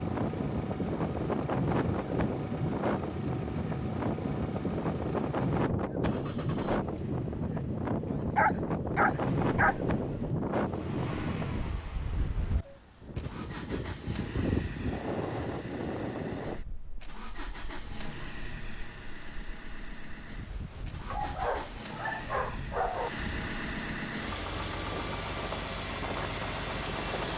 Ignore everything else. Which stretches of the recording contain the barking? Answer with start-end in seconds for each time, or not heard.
8.3-9.8, 21.1-23.1.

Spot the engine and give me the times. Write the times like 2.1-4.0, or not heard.
0.0-27.3.